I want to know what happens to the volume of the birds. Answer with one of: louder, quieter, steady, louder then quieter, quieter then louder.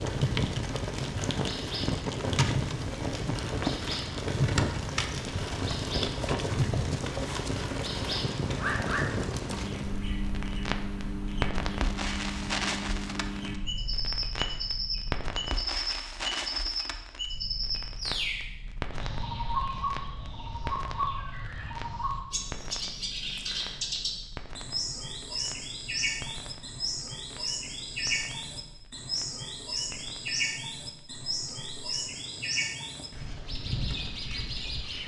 steady.